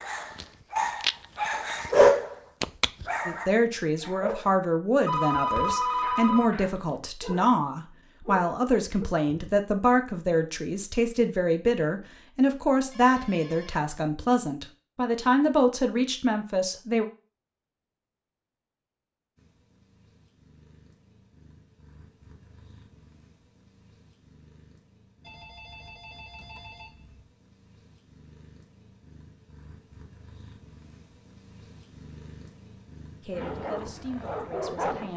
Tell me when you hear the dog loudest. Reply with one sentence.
The volume of the dog peaks at 2 seconds.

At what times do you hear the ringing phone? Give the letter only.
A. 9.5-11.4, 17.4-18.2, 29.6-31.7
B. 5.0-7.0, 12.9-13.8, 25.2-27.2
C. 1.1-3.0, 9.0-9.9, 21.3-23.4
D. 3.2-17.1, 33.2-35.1
B.